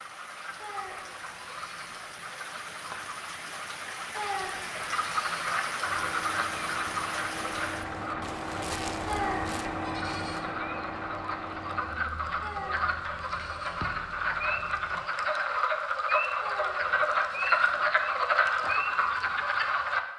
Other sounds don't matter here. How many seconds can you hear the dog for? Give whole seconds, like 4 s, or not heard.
not heard.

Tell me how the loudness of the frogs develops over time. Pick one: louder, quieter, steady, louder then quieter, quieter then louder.
louder.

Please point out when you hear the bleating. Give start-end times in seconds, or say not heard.
0.6-2.0, 4.2-5.5, 9.1-10.4, 12.4-13.8, 16.4-17.8.